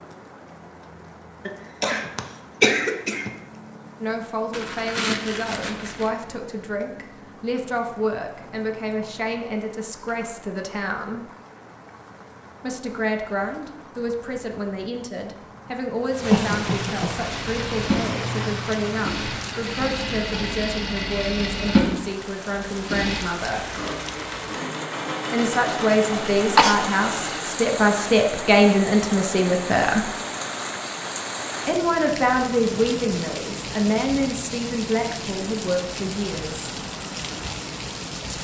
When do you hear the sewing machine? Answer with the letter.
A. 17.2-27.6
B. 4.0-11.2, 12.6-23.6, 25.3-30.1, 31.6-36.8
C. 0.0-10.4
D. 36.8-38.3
A.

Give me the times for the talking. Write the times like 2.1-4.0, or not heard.
4.0-11.2, 12.6-23.6, 25.3-30.1, 31.6-36.8.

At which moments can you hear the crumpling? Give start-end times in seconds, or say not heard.
4.5-6.1.